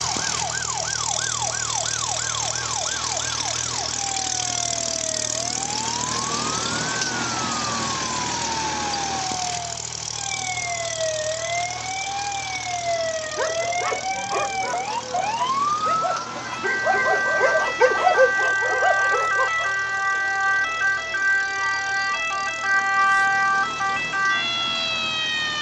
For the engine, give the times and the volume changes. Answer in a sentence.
You can hear the engine from 0.0 to 25.5 s, getting quieter.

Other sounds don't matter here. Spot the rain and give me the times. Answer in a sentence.
The rain can't be heard in this clip.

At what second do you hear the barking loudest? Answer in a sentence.
The loudest moment of the barking is at 18 seconds.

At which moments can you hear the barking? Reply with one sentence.
You can hear the barking from 13.3 to 19.8 s.